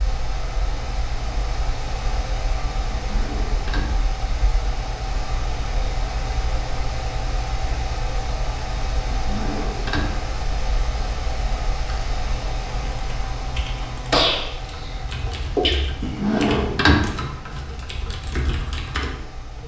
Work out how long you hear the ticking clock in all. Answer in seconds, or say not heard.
not heard.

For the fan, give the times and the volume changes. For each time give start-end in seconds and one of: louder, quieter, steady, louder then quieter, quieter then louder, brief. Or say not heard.
0.0-19.6 quieter.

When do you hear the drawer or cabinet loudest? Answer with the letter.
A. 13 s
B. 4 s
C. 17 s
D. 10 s
C.